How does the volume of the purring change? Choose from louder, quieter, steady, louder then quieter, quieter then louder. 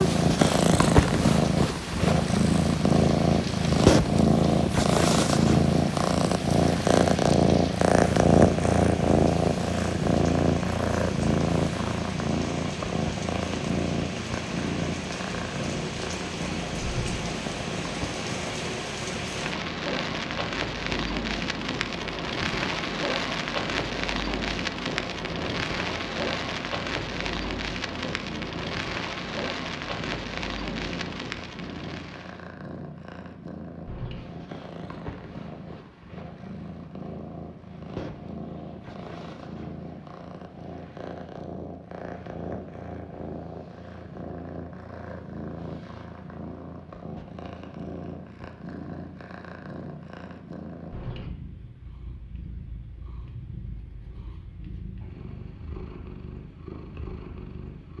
quieter.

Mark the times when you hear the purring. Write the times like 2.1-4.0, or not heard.
0.0-57.9.